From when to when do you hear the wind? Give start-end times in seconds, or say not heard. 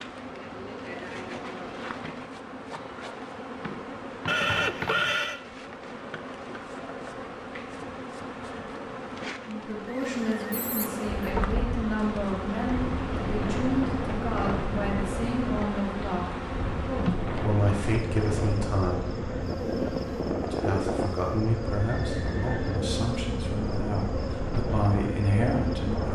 11.1-26.0.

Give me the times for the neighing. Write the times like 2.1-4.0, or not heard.
4.2-5.4, 9.8-11.0, 21.8-22.8.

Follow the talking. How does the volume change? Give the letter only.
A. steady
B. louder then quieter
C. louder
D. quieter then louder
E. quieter
A.